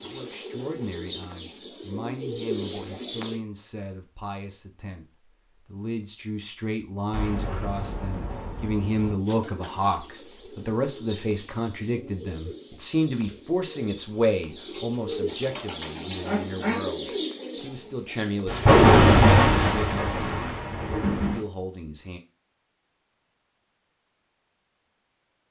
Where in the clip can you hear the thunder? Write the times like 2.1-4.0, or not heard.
7.1-9.2, 18.4-21.4.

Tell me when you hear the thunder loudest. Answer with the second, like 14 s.
19 s.